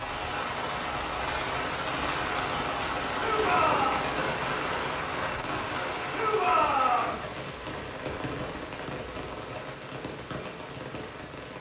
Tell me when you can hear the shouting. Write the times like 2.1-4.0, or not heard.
3.1-4.0, 6.1-7.2.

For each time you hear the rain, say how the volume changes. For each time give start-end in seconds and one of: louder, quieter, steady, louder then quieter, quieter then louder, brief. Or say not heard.
0.0-11.5 quieter.